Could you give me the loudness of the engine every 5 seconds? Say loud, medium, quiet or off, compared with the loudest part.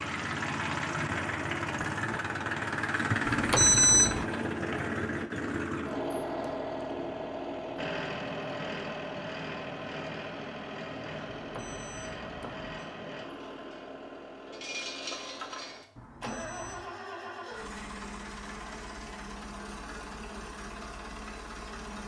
loud, loud, medium, medium, medium.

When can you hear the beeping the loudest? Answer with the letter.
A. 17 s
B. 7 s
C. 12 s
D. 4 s
D.